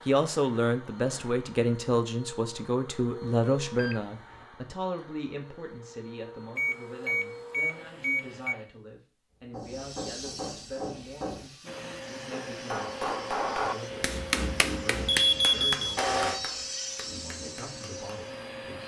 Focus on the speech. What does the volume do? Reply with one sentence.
The loudness of the speech goes down.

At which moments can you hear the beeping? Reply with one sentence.
The beeping can be heard from 3.8 to 4.3 s, from 6.5 to 8.6 s and from 15.1 to 16.4 s.